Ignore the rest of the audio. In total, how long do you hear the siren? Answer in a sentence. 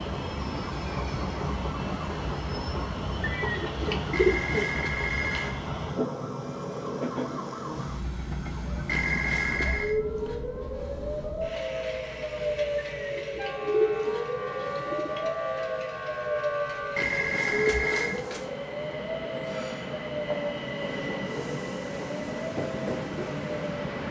The siren can be heard for 24 seconds in total.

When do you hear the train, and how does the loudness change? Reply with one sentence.
You can hear the train from 0.0 to 24.0 s, getting quieter then louder.